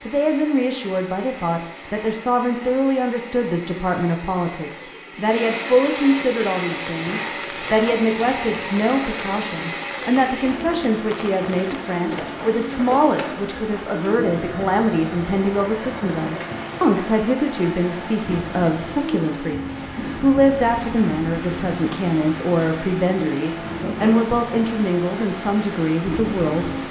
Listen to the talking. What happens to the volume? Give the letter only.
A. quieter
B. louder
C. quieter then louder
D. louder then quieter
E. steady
E.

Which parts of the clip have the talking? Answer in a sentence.
The talking can be heard from 0.1 to 26.7 s.